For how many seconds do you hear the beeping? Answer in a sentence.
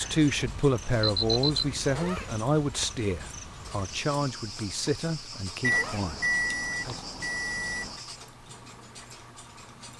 The beeping can be heard for 4 seconds in total.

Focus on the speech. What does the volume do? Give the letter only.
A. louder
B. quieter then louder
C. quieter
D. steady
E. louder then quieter
C.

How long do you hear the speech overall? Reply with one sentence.
The speech can be heard for 7 seconds in total.